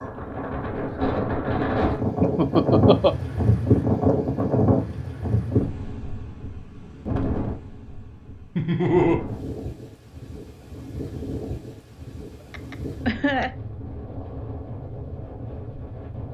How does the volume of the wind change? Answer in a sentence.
The volume of the wind goes down.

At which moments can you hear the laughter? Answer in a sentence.
You can hear the laughter from 2.2 to 3.1 s, from 8.6 to 9.2 s and from 12.5 to 13.5 s.